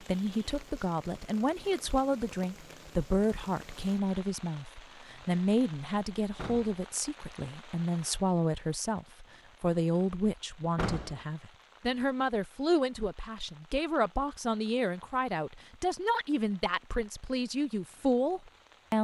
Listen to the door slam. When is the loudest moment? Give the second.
11 s.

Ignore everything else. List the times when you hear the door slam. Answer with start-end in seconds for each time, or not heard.
6.3-6.8, 10.8-11.2.